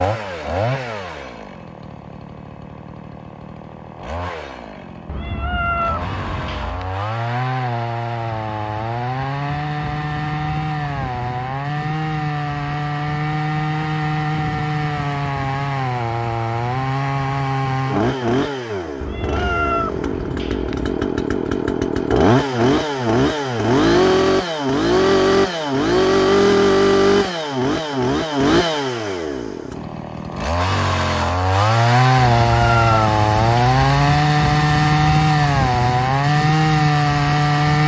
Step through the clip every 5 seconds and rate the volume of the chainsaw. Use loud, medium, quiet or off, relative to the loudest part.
quiet, medium, medium, medium, loud, loud, loud, loud.